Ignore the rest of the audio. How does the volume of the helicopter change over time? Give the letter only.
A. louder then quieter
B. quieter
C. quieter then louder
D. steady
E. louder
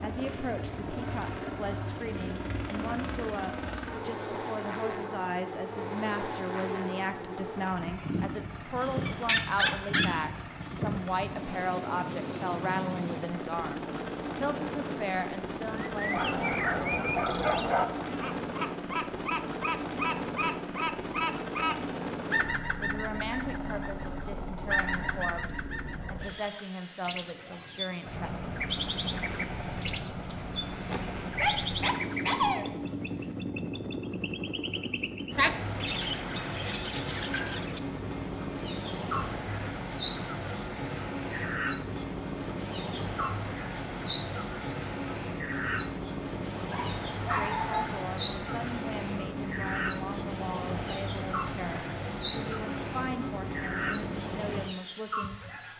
D.